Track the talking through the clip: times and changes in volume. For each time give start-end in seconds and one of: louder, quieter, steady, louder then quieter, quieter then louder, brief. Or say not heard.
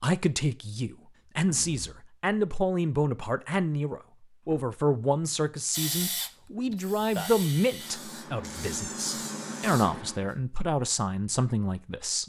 0.0-12.2 steady.